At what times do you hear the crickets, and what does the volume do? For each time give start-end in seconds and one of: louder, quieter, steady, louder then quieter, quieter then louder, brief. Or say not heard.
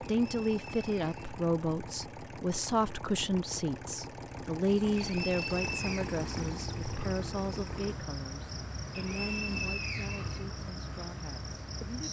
4.7-12.0 steady.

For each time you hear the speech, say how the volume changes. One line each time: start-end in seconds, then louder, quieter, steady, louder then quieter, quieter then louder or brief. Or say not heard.
0.0-12.0 quieter.